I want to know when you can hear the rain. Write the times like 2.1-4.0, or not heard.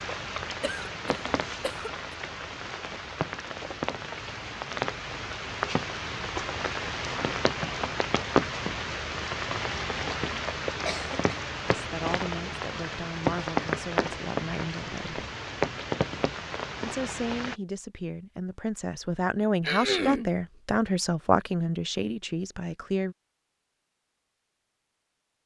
0.0-17.6.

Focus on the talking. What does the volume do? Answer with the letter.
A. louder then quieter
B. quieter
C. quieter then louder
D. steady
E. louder
E.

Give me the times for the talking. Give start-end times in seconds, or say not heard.
11.7-15.2, 16.8-23.1.